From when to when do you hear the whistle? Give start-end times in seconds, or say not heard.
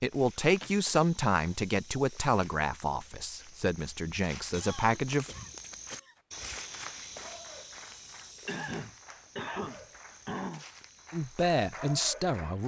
not heard.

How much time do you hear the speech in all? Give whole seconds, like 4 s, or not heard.
7 s.